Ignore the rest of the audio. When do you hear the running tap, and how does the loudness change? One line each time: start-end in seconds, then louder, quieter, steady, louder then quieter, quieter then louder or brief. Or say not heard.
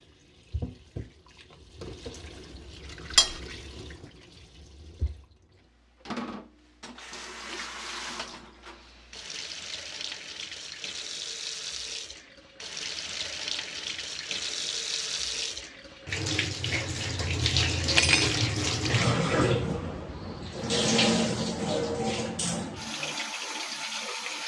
0.0-24.4 louder.